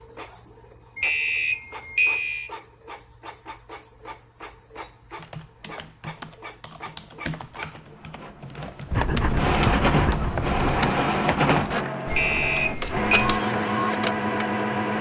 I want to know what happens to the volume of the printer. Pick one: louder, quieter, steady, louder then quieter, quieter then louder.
louder.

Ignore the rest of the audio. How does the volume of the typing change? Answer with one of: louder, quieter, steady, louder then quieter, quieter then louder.
louder.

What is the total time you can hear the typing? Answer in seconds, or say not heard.
8 s.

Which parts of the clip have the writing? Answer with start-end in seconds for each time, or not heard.
8.9-10.9.